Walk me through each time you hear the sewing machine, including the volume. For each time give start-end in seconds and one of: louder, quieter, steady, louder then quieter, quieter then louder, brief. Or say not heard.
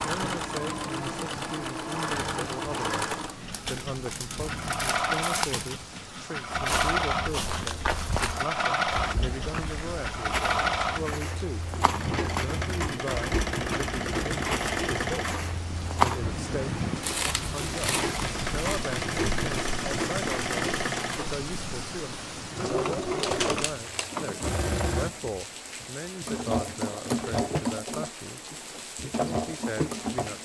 0.0-30.3 steady.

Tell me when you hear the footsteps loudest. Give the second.
16 s.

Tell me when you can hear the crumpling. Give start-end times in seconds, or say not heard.
3.5-5.8, 17.0-18.8, 23.2-24.2.